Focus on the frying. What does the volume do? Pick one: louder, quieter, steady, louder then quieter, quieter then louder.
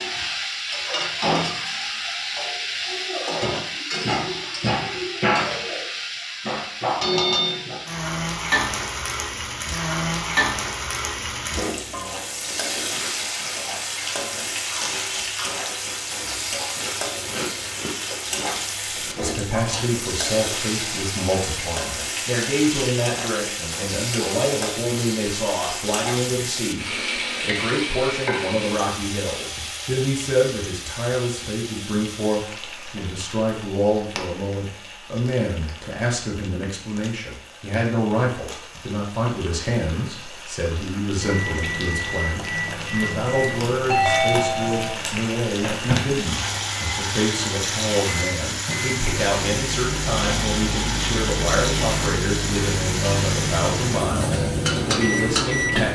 quieter then louder.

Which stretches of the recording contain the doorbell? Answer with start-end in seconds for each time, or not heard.
43.9-45.0.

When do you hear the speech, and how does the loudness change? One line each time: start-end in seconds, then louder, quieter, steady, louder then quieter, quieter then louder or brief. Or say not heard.
19.1-55.8 steady.